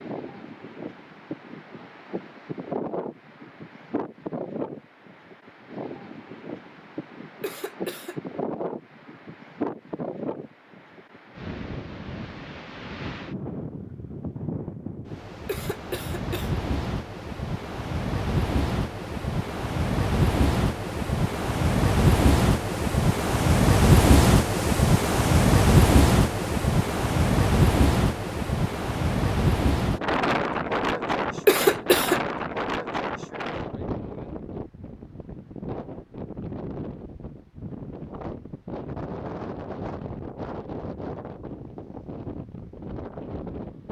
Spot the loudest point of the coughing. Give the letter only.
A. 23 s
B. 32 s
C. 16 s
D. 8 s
B.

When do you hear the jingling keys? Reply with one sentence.
The jingling keys can't be heard in this clip.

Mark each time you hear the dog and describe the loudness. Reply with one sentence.
You can't hear the dog here.